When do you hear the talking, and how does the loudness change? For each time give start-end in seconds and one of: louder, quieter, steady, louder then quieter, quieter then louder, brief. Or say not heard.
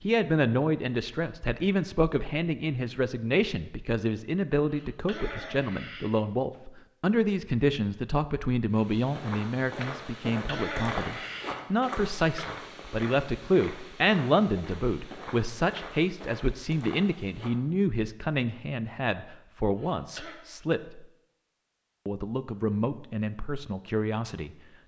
0.0-21.1 steady
22.1-24.5 brief.